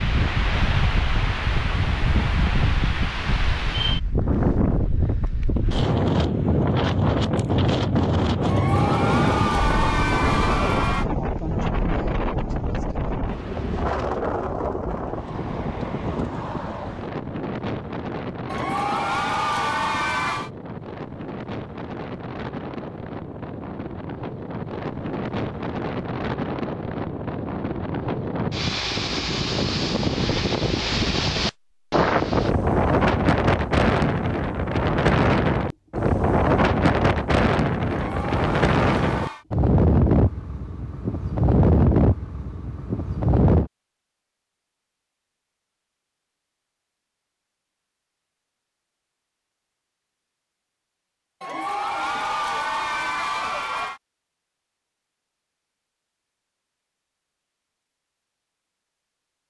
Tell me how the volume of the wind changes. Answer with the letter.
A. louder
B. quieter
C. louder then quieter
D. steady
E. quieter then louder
E.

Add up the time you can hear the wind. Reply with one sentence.
You can hear the wind for 44 seconds altogether.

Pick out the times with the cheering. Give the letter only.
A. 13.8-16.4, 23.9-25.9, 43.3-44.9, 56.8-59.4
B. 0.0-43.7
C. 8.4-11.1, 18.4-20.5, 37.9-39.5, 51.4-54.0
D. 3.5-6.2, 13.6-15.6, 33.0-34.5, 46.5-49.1
C.